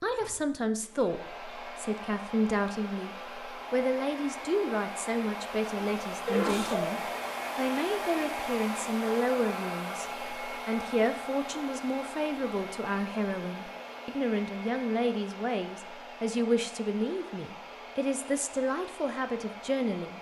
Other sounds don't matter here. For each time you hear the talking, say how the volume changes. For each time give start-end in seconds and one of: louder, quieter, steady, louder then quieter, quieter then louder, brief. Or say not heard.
0.0-20.1 steady.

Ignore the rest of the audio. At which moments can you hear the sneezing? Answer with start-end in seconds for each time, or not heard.
5.8-7.0.